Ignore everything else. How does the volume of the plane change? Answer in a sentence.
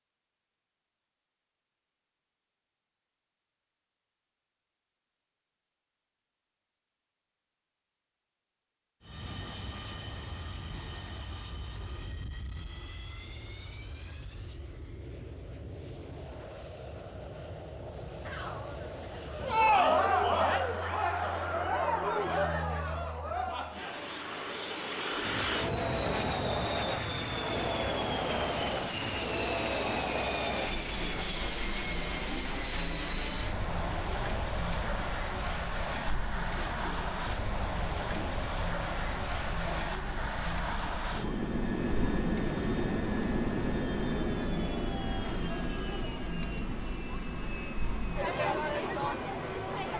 The loudness of the plane goes up.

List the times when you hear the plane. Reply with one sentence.
You can hear the plane from 9.0 to 49.9 s.